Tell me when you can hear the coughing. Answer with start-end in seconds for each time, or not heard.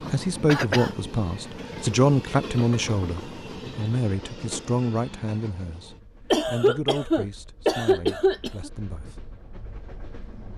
0.5-0.9, 6.3-8.7.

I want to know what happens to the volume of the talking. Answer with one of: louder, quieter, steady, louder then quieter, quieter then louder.
quieter.